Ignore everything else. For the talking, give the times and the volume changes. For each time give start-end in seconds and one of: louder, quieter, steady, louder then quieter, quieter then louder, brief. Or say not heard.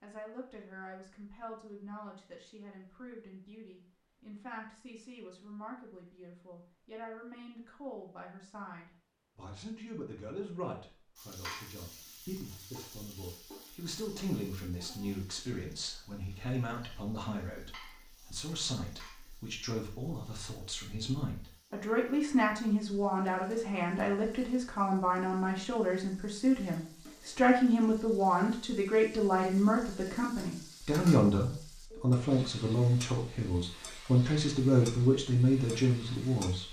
0.0-36.6 louder.